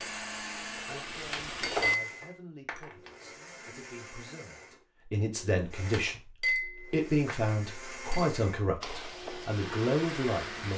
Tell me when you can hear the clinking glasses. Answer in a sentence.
The clinking glasses can be heard from 1.3 to 3.1 s and from 5.9 to 8.2 s.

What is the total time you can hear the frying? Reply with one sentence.
The frying can be heard for 4 seconds in total.